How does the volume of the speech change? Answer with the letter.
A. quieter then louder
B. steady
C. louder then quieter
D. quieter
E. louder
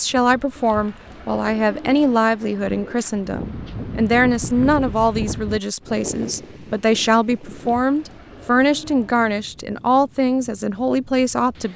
B.